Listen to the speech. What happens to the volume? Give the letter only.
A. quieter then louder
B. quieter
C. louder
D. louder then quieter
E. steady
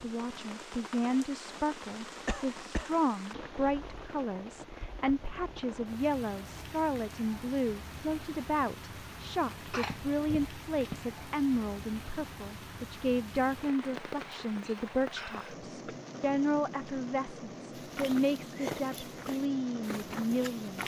E.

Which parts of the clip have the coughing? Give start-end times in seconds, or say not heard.
2.2-3.0, 9.7-11.2, 15.2-15.9.